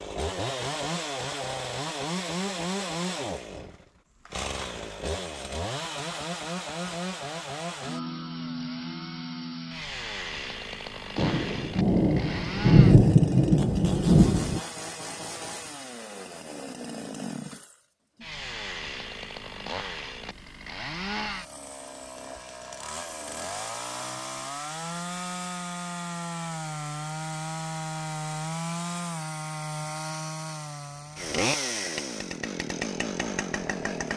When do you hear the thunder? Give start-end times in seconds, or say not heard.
11.2-14.6.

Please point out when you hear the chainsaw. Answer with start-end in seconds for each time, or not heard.
0.0-34.1.